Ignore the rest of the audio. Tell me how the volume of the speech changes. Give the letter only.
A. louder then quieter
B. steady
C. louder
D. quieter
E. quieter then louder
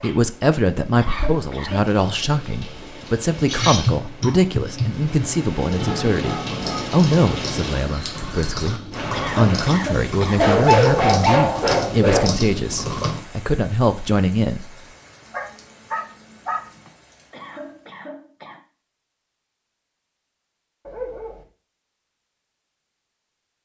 B.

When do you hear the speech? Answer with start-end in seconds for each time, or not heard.
0.0-14.8.